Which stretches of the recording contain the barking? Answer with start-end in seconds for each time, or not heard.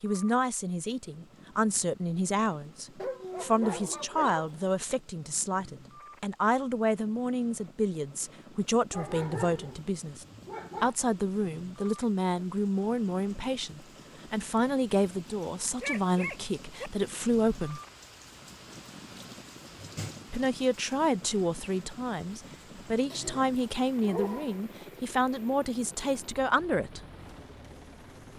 3.0-4.7, 8.9-10.9, 15.8-16.9, 23.1-24.6.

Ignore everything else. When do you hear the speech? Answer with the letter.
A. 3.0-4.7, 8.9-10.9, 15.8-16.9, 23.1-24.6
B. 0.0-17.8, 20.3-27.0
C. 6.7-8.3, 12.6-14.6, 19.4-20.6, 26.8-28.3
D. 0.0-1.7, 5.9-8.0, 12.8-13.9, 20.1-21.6
B.